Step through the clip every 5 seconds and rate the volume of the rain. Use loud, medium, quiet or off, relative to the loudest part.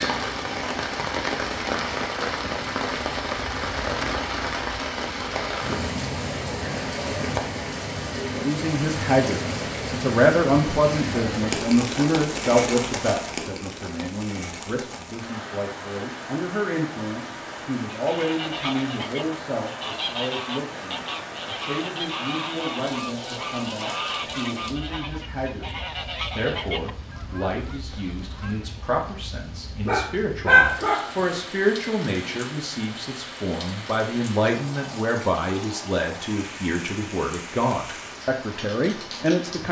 loud, loud, loud, medium, medium, quiet, medium, medium.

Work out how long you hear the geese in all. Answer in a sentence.
You can hear the geese for 11 seconds altogether.